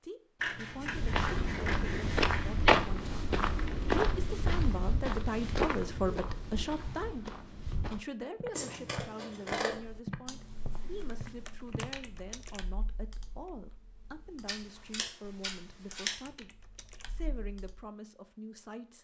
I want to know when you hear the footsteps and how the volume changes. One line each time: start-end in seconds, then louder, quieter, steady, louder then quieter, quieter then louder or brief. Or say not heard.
0.8-11.9 quieter.